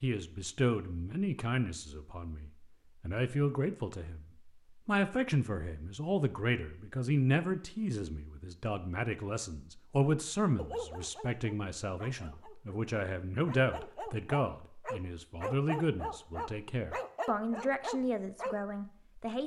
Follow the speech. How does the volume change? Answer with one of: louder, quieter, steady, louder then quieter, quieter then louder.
steady.